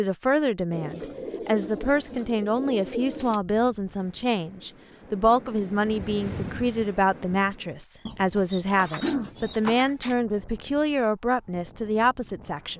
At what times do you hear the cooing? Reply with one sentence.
You can hear the cooing from 0.7 to 3.4 s and from 8.1 to 10.2 s.